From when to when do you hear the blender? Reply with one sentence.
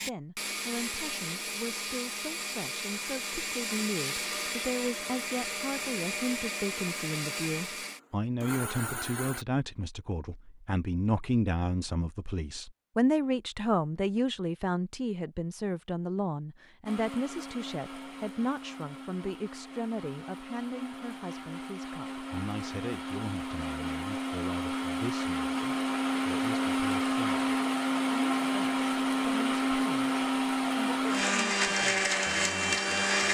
You can hear the blender from 0.0 to 9.4 s and from 16.9 to 33.2 s.